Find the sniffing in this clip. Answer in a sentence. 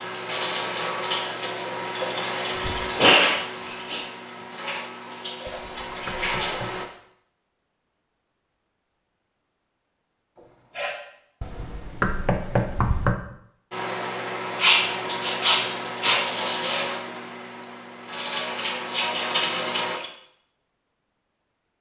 You can hear the sniffing from 2.6 to 4.0 s, from 10.3 to 10.9 s and from 14.6 to 16.2 s.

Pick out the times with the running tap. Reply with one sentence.
The running tap can be heard from 0.0 to 6.8 s and from 13.7 to 20.1 s.